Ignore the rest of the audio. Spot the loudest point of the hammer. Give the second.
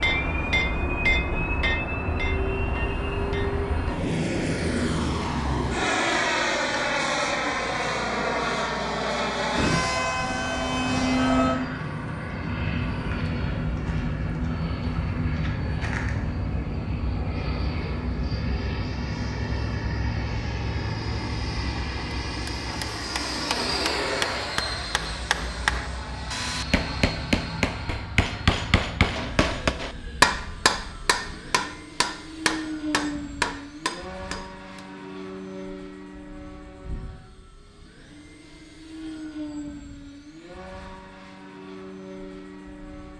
30 s.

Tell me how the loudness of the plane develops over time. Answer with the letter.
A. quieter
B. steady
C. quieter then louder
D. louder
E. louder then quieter
A.